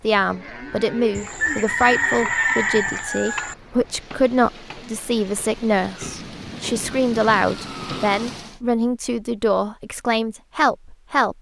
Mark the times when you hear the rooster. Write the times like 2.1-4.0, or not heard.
1.1-3.5.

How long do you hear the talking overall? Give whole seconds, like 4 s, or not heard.
11 s.